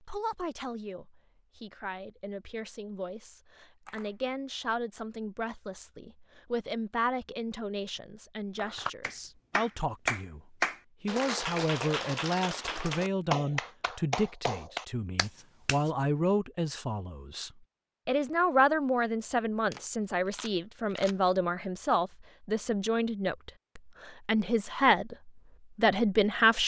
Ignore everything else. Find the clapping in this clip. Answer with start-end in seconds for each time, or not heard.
8.6-15.9.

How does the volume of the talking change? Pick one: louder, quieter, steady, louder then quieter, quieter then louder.
louder.